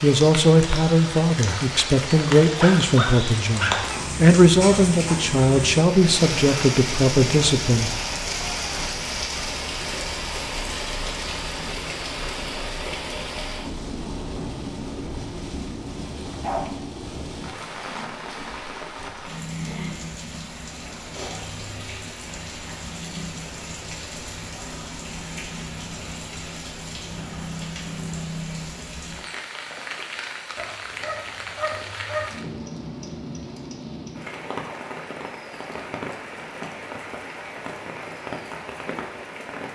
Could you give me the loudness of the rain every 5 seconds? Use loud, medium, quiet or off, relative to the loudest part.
loud, loud, loud, medium, medium, medium, medium, medium.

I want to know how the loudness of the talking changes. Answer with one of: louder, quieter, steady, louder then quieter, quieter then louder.
steady.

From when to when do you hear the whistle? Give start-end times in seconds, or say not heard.
not heard.